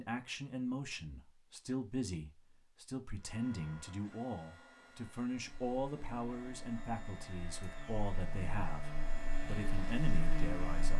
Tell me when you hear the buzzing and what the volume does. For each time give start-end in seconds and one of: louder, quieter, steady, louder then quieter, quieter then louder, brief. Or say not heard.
5.3-10.9 louder.